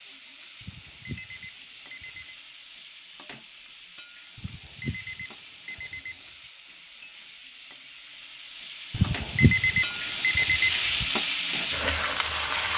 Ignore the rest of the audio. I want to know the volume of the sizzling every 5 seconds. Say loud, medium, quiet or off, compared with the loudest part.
quiet, quiet, loud.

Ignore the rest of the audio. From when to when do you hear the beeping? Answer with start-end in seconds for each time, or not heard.
0.6-2.4, 4.3-6.3, 8.9-11.1.